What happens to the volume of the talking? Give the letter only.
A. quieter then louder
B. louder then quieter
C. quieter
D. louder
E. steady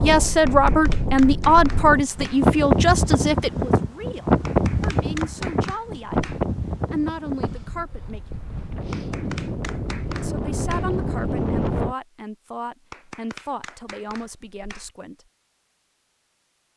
C.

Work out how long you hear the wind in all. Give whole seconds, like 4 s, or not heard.
12 s.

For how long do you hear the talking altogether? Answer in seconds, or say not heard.
13 s.